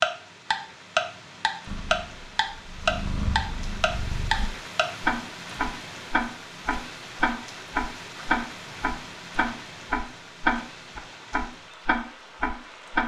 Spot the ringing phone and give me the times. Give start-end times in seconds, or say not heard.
not heard.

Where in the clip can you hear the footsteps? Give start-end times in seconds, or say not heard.
not heard.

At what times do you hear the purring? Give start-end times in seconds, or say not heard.
1.6-4.5.